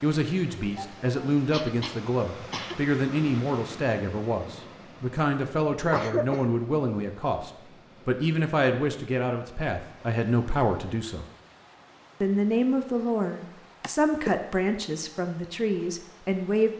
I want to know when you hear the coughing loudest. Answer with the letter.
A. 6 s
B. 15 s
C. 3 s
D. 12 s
A.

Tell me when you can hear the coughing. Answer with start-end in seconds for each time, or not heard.
0.6-2.9, 5.8-6.5, 13.8-14.3.